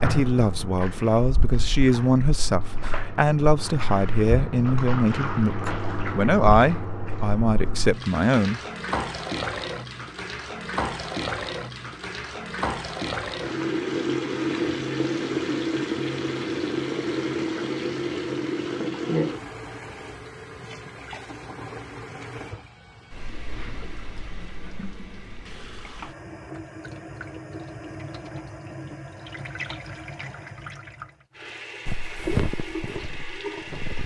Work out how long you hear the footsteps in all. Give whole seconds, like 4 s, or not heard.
2 s.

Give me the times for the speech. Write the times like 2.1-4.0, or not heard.
0.0-8.6.